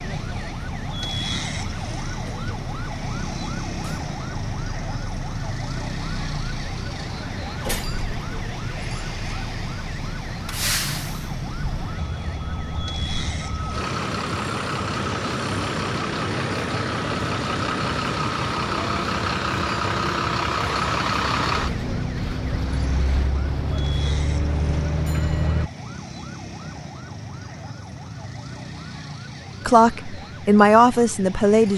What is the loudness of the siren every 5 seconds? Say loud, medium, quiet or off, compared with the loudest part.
loud, loud, loud, loud, medium, medium, medium.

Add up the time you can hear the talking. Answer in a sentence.
The talking can be heard for 2 seconds in total.